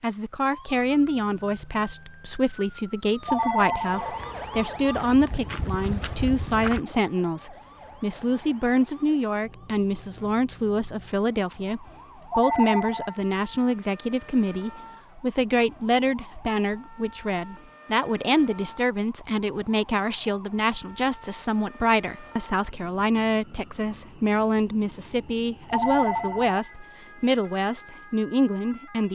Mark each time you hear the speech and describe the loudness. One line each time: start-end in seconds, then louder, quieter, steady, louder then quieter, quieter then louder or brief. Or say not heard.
0.0-29.1 steady.